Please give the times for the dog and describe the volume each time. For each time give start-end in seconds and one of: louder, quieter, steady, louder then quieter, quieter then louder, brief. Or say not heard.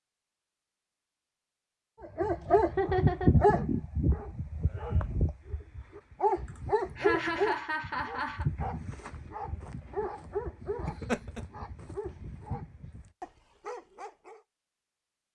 2.0-14.4 quieter.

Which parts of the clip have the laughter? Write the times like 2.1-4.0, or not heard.
2.6-3.4, 6.5-8.4, 10.8-11.4.